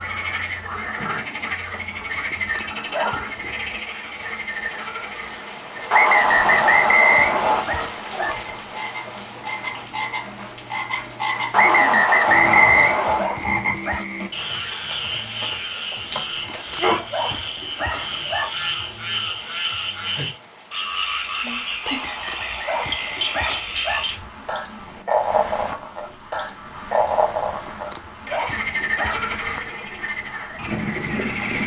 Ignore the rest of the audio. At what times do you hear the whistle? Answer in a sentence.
The whistle can be heard from 5.9 to 7.7 s, from 11.5 to 13.2 s and from 21.8 to 23.6 s.